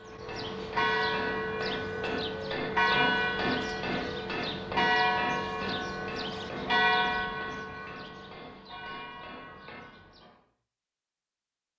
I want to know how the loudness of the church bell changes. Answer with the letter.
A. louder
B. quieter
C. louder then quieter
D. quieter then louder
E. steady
B.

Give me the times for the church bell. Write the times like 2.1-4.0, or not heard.
0.0-10.3.